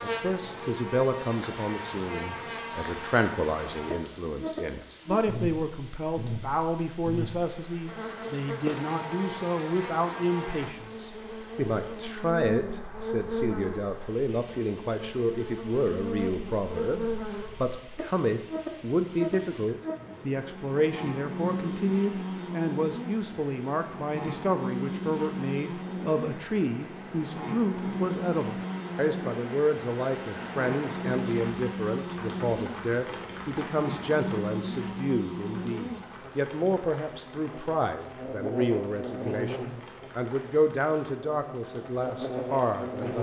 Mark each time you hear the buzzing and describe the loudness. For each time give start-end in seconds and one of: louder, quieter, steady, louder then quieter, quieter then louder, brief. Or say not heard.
0.0-43.1 steady.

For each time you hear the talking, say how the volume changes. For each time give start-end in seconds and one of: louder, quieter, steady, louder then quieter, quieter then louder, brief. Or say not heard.
0.0-43.1 steady.